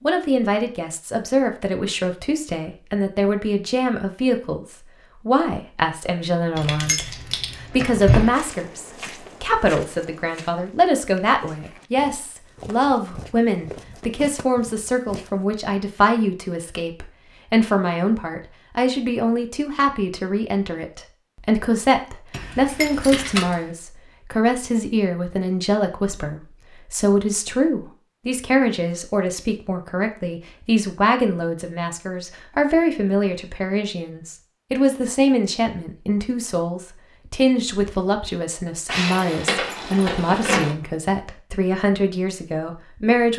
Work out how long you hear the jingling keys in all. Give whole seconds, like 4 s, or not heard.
5 s.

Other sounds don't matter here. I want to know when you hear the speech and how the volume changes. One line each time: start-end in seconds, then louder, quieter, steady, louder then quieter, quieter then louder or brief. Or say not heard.
0.0-43.3 steady.